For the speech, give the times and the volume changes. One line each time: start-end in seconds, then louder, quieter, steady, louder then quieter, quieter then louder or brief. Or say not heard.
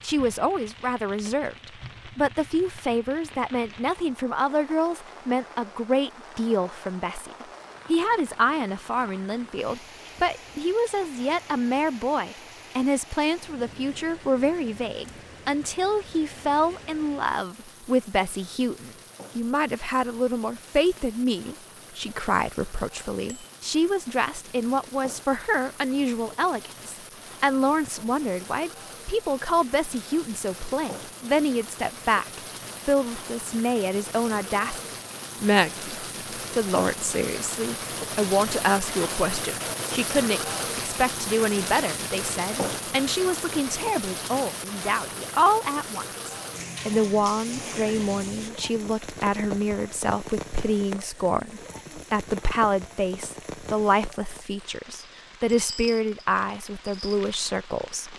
0.0-58.1 steady.